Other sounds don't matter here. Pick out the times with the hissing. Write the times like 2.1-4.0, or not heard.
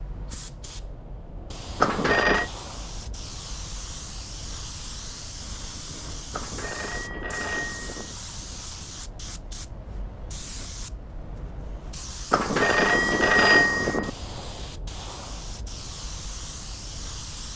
0.0-17.5.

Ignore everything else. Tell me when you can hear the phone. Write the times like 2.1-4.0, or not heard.
1.8-2.5, 6.3-8.2, 12.3-14.1.